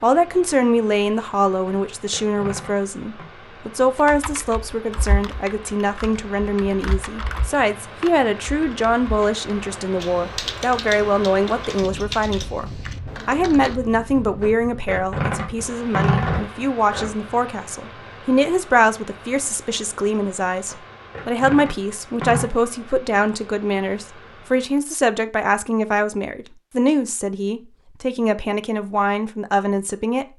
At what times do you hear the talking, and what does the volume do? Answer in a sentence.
You can hear the talking from 0.0 to 30.2 s, at a steady volume.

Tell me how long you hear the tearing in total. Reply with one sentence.
The tearing can be heard for 6 seconds in total.